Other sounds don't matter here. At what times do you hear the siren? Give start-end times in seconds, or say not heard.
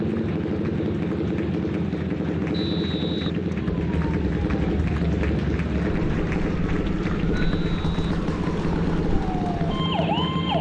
3.7-10.5.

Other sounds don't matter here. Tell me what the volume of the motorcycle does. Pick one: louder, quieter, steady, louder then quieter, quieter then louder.
steady.